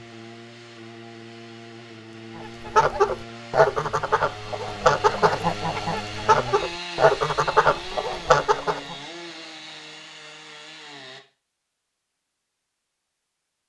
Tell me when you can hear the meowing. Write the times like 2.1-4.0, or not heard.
not heard.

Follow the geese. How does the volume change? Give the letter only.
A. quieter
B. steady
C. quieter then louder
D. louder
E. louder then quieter
B.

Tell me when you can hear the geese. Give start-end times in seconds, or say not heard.
2.6-8.9.